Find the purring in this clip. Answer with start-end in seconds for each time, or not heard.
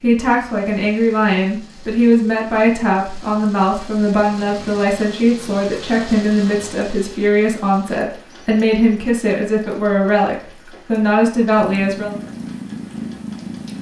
11.6-13.7.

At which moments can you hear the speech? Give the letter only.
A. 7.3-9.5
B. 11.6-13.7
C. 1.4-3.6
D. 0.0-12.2
D.